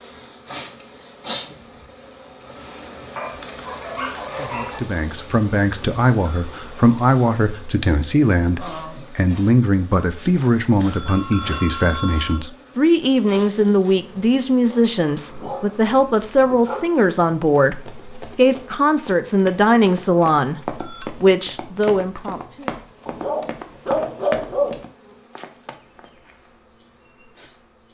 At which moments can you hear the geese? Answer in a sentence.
The geese can't be heard in this clip.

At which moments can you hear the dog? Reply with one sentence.
The dog can be heard from 3.1 to 4.8 s, from 14.7 to 16.9 s and from 23.1 to 24.8 s.